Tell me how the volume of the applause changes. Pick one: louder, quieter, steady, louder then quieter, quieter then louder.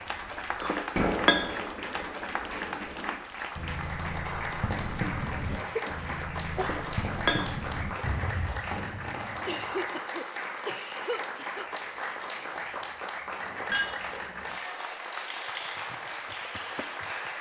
steady.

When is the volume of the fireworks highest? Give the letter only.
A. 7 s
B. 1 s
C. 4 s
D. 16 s
B.